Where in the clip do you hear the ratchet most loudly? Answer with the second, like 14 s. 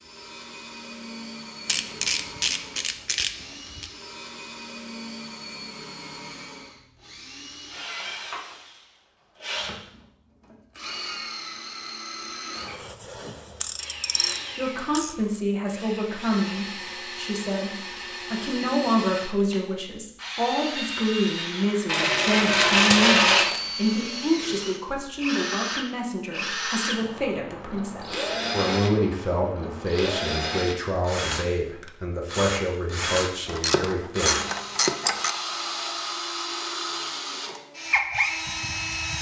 23 s.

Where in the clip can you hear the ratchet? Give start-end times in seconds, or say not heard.
1.6-3.9, 12.6-15.2, 21.9-23.6, 33.5-35.4.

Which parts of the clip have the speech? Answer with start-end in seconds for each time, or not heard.
14.6-34.4.